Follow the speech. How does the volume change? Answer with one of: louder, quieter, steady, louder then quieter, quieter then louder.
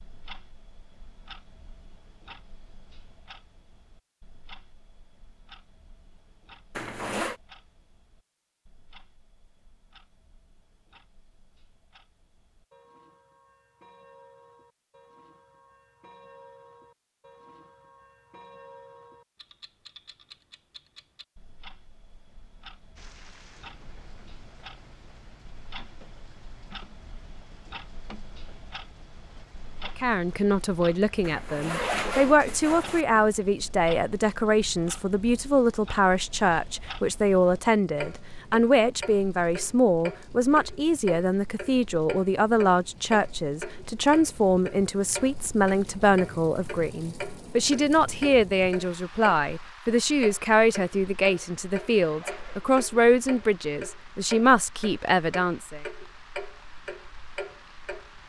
steady.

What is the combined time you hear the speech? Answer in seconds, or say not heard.
26 s.